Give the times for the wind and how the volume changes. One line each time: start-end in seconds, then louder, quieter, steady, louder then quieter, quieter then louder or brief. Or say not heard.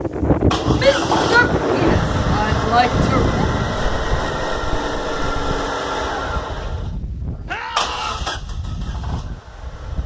0.0-10.0 quieter.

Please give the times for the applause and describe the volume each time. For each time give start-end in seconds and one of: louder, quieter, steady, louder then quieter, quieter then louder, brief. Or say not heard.
not heard.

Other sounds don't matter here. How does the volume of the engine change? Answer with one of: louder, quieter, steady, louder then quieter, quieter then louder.
quieter.